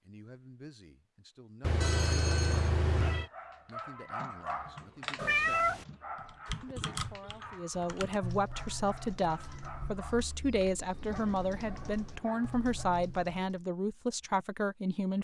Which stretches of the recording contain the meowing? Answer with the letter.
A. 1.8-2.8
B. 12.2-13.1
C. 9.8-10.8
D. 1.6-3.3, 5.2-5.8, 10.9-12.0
D.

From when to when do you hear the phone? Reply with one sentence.
You can hear the phone from 1.8 to 2.8 s.